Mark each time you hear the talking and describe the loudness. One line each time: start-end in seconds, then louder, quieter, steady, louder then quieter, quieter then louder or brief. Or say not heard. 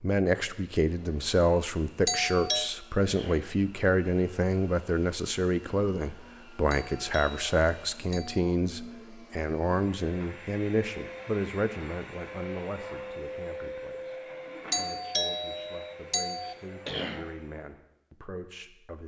0.0-19.0 quieter.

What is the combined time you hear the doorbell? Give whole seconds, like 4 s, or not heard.
4 s.